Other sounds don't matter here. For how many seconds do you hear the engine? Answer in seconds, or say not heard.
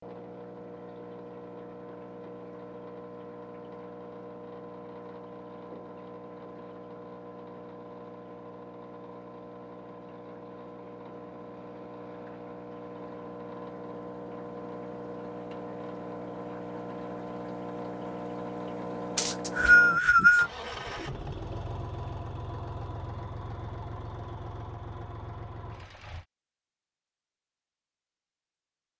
26 s.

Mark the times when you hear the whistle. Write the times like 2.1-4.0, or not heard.
19.1-20.5.